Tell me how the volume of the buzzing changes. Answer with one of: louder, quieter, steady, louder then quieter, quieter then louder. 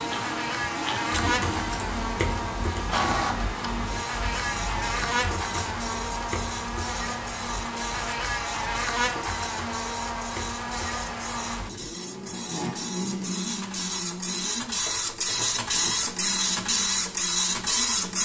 quieter.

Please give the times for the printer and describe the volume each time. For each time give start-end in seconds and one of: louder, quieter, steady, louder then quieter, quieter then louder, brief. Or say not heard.
0.0-18.1 quieter then louder.